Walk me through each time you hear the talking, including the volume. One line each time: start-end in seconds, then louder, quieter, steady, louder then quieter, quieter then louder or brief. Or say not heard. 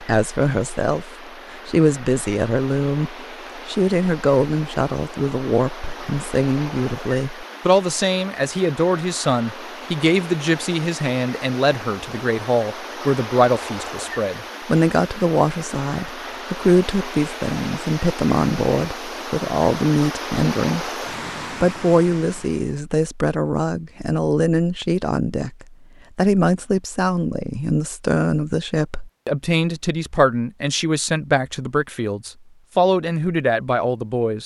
0.0-20.9 steady
21.6-34.4 steady.